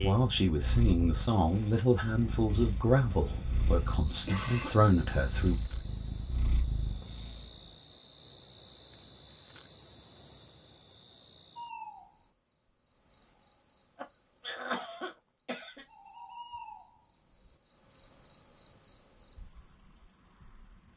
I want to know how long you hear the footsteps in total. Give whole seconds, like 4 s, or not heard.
not heard.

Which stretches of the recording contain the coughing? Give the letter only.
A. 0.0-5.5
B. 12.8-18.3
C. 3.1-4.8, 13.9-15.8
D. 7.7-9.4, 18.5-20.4
C.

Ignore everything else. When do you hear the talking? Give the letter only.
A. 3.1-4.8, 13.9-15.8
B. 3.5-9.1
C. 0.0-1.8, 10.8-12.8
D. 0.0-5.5
D.